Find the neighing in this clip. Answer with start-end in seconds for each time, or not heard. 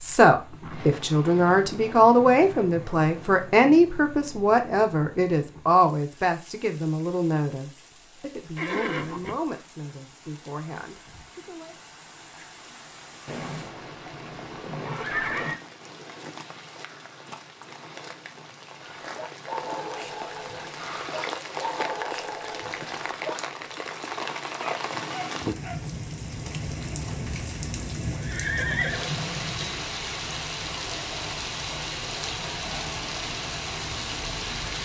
8.6-9.3, 13.2-15.6, 28.1-29.8.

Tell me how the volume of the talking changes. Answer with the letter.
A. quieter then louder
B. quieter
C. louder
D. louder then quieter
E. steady
B.